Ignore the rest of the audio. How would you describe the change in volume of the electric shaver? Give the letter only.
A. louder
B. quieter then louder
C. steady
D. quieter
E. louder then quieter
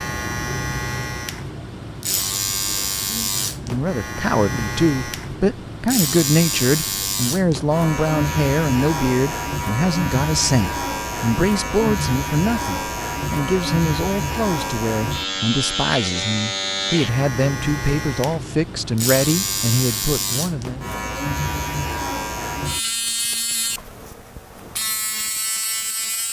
C.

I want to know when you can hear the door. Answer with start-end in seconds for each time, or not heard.
not heard.